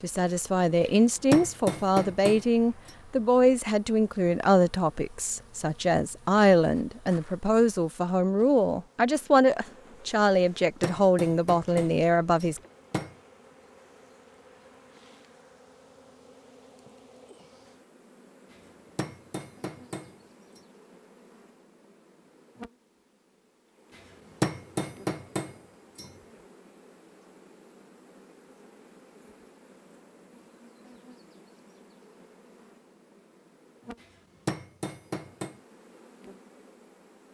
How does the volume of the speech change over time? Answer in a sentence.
The loudness of the speech stays about the same.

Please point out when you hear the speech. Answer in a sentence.
You can hear the speech from 0.0 to 12.6 s.